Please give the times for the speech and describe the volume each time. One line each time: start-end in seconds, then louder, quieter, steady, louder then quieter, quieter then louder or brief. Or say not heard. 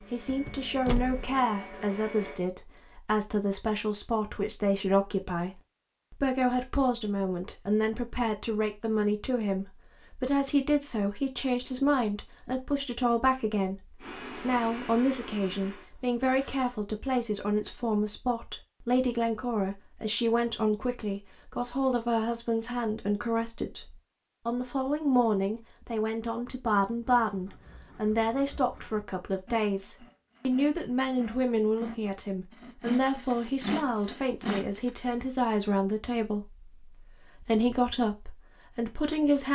0.0-39.5 steady.